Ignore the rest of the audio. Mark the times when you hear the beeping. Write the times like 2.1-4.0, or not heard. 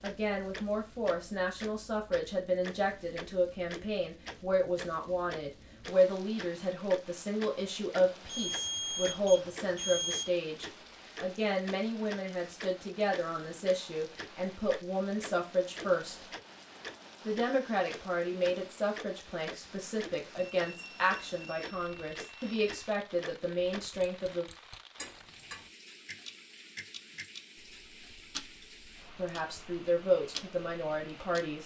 8.2-10.2, 20.4-22.6.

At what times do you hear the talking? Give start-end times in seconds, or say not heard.
0.0-16.2, 17.2-24.4, 29.1-31.6.